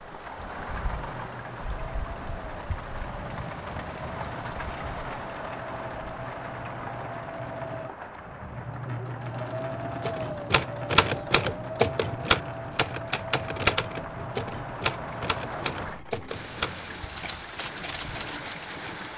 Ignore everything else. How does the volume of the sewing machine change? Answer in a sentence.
The loudness of the sewing machine goes up, then down.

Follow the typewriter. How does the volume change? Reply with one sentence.
The loudness of the typewriter goes down.